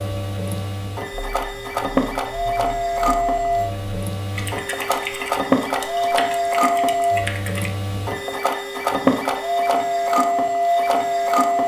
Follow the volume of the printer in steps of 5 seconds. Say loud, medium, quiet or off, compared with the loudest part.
medium, loud, loud.